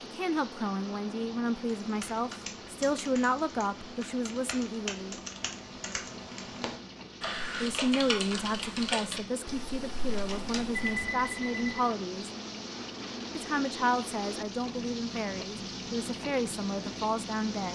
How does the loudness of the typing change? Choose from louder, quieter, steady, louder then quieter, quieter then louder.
louder then quieter.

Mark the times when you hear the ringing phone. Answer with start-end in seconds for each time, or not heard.
10.7-11.8.